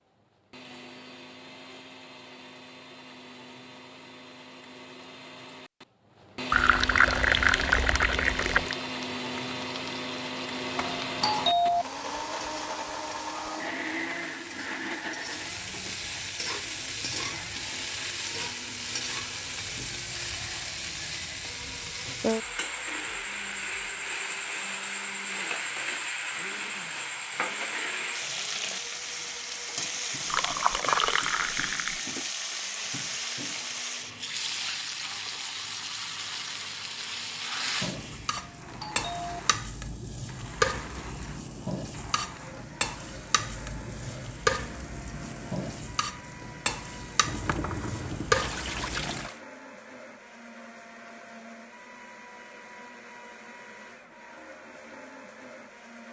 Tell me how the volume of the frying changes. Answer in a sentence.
The volume of the frying goes up.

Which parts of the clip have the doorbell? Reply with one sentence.
The doorbell can be heard from 10.8 to 11.8 s and from 38.4 to 39.4 s.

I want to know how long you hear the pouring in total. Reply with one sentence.
You can hear the pouring for 6 seconds altogether.